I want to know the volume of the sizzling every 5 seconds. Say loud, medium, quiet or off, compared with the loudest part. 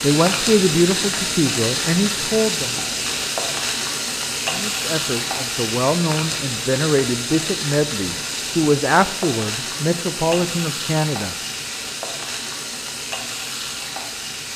loud, loud, medium.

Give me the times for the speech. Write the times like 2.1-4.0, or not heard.
0.0-2.8, 4.5-11.3.